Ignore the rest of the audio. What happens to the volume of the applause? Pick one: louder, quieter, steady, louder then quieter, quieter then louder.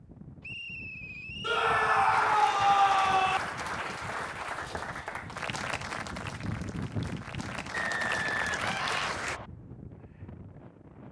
quieter then louder.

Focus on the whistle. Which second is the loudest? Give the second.
8 s.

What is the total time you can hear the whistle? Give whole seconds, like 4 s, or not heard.
3 s.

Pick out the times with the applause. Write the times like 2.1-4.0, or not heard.
2.1-9.4.